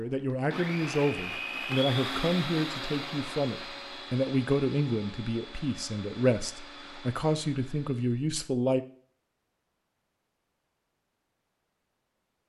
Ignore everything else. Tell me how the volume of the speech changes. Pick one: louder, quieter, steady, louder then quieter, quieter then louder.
steady.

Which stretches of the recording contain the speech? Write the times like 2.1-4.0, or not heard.
0.0-8.8.